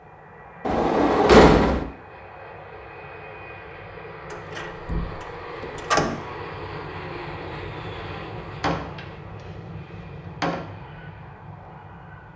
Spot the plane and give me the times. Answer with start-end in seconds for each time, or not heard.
0.0-12.3.